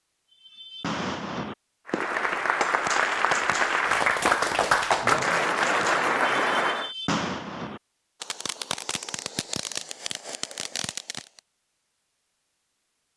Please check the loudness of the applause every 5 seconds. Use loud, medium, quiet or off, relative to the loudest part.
loud, loud, off.